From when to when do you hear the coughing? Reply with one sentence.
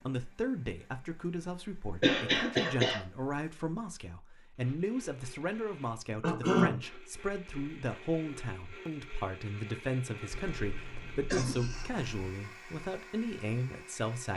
The coughing can be heard from 2.0 to 3.0 s, from 6.2 to 6.8 s and from 10.3 to 12.3 s.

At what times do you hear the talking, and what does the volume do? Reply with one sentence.
You can hear the talking from 0.0 to 14.3 s, at a steady volume.